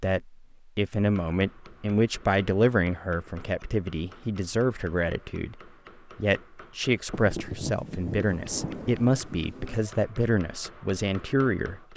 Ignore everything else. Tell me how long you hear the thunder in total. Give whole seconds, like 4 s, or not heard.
3 s.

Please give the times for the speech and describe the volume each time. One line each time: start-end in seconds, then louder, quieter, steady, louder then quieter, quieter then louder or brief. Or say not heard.
0.0-11.9 steady.